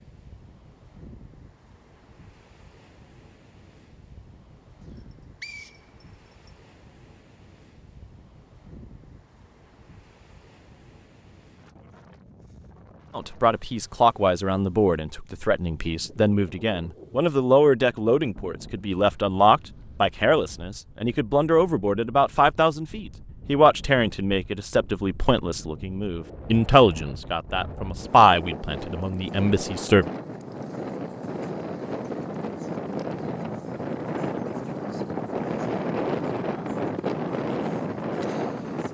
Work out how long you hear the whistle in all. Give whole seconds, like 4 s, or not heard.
2 s.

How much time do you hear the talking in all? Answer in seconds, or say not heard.
17 s.